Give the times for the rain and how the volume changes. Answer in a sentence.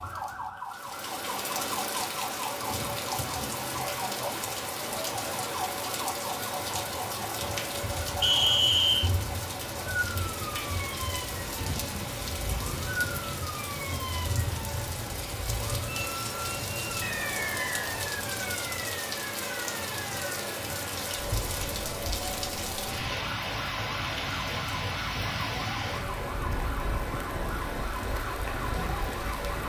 You can hear the rain from 0.0 to 29.6 s, at a steady volume.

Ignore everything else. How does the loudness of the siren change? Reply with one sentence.
The loudness of the siren stays about the same.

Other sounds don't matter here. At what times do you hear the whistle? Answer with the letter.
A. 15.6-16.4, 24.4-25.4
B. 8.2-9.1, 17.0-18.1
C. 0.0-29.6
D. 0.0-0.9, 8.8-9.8
B.